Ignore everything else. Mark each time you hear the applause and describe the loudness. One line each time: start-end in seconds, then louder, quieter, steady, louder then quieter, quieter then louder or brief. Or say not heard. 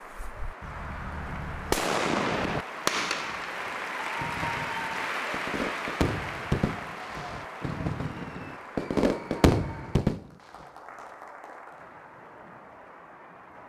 0.0-13.6 louder then quieter.